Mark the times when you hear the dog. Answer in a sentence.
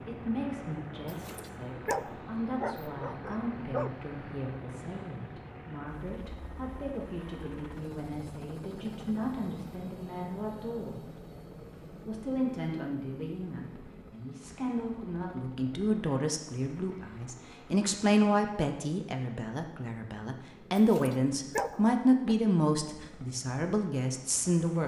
The dog can be heard from 1.1 to 3.9 s and from 20.8 to 22.4 s.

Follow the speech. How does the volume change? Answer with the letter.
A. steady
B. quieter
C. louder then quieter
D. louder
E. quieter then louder
D.